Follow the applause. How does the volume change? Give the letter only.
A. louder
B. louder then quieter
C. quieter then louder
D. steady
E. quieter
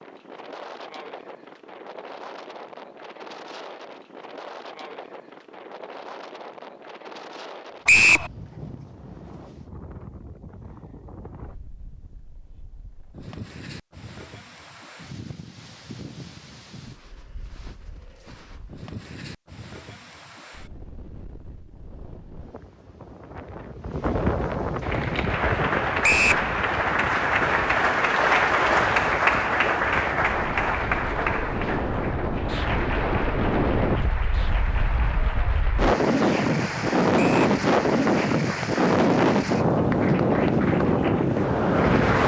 E.